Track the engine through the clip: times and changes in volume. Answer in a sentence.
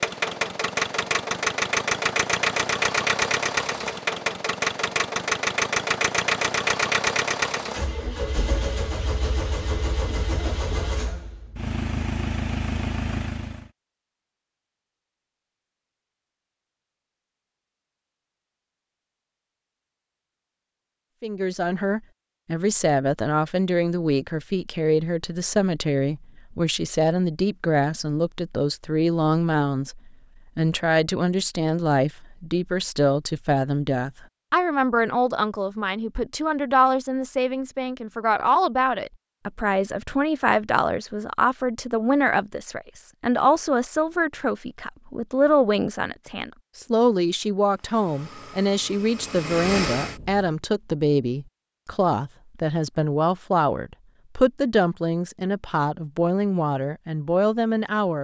The engine can be heard from 0.0 to 13.7 s, getting quieter; and briefly from 47.8 to 50.5 s.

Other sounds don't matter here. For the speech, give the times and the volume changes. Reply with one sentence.
The speech can be heard from 21.2 to 58.1 s, at a steady volume.